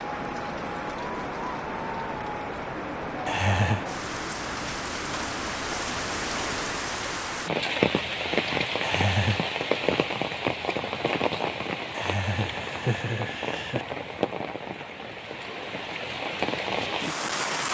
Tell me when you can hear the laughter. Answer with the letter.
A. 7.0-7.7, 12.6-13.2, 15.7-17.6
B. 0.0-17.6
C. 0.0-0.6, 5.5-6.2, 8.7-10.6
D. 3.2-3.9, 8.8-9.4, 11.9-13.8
D.